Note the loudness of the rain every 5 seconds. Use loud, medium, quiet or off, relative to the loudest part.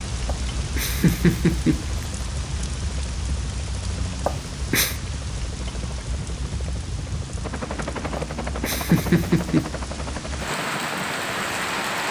medium, medium, loud.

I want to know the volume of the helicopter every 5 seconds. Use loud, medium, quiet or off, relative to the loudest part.
medium, loud, loud.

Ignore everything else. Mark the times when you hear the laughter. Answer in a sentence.
The laughter can be heard from 0.2 to 2.0 s, from 4.2 to 5.0 s and from 8.2 to 9.7 s.